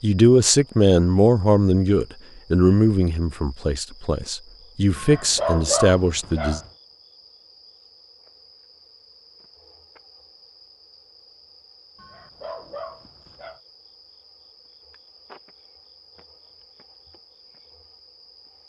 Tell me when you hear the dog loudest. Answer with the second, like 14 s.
6 s.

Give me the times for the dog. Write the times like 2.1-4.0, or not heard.
5.0-6.7, 11.9-13.6.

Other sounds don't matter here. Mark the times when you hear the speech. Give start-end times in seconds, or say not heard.
0.0-6.6.